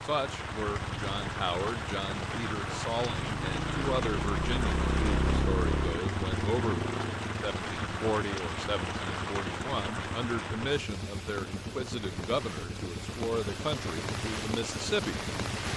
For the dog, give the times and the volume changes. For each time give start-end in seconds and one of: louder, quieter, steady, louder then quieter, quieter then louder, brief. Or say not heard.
not heard.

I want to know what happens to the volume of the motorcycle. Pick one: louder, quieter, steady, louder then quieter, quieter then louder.
louder then quieter.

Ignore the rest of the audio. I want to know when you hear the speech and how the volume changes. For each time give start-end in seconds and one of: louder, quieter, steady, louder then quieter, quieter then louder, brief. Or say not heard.
0.0-15.2 steady.